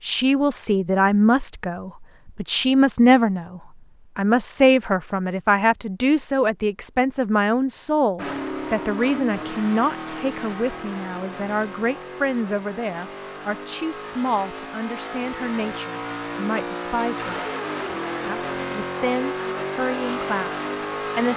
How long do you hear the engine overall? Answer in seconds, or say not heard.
13 s.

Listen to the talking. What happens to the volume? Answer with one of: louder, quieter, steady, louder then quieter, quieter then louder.
quieter.